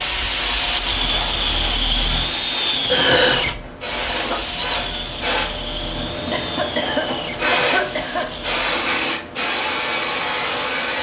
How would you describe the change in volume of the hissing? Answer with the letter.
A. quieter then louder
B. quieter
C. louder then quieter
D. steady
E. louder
E.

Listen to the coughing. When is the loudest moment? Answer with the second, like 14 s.
3 s.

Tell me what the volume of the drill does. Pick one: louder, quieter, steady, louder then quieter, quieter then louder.
quieter.